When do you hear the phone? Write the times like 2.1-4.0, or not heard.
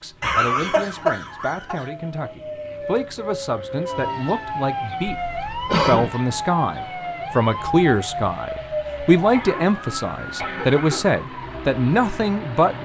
not heard.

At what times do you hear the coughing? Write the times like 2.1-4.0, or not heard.
0.2-1.9, 5.1-6.1, 9.3-11.1.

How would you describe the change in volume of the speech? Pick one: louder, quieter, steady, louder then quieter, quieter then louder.
louder.